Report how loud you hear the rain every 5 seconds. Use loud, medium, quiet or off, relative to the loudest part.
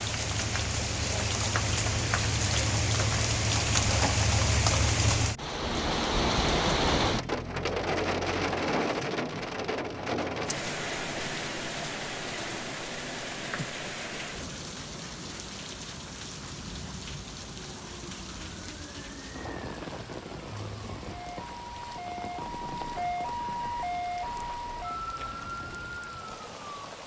loud, loud, medium, quiet, quiet, quiet.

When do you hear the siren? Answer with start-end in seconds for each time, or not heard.
17.4-27.0.